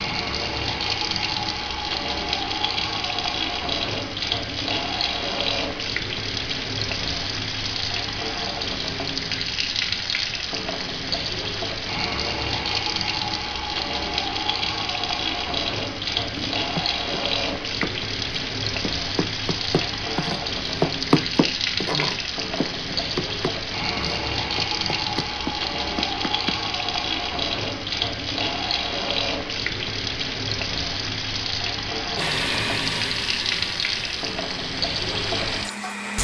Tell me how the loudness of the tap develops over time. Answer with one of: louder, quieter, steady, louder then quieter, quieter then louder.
steady.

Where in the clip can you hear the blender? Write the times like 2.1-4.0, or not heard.
32.1-36.1.